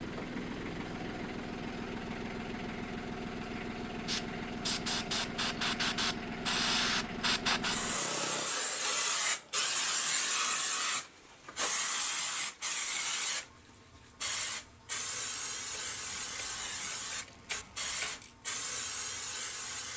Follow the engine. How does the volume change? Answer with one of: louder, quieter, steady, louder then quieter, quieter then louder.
quieter.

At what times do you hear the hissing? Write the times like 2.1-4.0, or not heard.
4.0-19.9.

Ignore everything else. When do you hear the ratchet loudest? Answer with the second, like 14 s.
18 s.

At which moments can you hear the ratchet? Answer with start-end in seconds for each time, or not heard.
15.7-18.4.